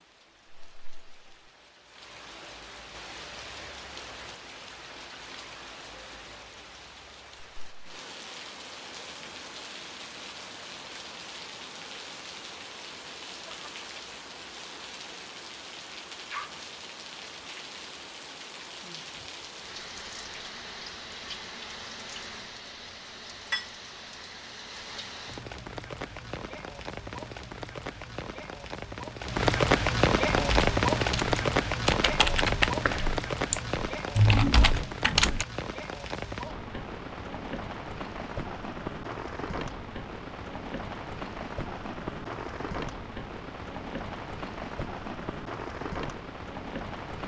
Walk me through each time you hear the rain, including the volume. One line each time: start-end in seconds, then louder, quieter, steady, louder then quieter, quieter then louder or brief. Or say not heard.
0.0-47.2 louder then quieter.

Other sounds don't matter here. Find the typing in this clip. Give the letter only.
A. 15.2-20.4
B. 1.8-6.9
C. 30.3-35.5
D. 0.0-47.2
C.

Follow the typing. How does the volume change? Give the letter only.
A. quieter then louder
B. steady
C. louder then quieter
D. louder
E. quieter
D.